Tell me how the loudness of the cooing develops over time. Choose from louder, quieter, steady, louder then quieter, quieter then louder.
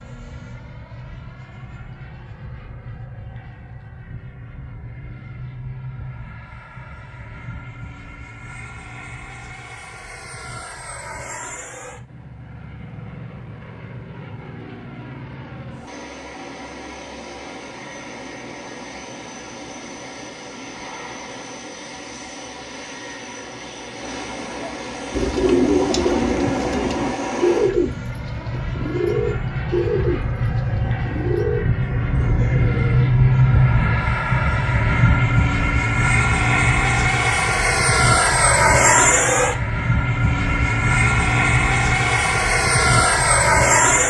quieter.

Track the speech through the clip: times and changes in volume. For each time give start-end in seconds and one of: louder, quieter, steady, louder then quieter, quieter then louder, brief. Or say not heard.
not heard.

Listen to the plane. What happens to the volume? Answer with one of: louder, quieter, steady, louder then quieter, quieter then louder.
louder.